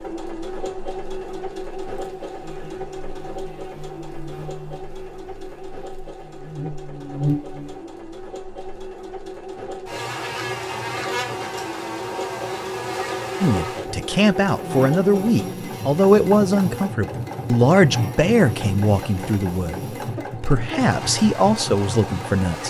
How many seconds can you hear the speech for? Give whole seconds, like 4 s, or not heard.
9 s.